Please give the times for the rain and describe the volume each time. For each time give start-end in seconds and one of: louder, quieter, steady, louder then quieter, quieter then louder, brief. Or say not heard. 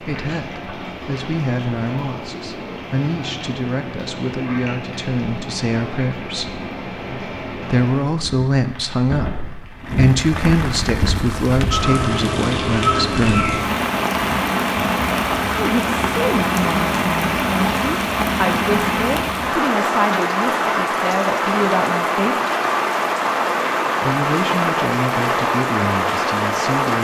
0.0-26.9 louder.